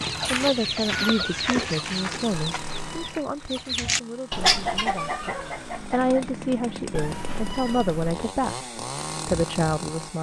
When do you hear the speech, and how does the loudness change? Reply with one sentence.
The speech can be heard from 0.3 to 10.1 s, getting quieter then louder.